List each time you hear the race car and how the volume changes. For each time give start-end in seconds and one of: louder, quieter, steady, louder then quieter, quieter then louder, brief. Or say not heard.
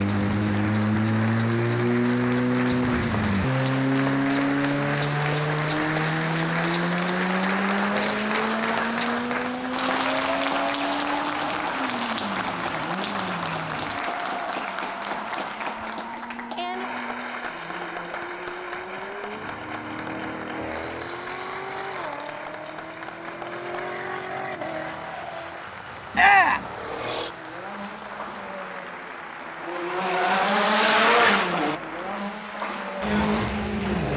0.0-34.1 quieter then louder.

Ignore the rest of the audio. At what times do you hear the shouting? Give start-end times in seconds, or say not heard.
26.1-26.7.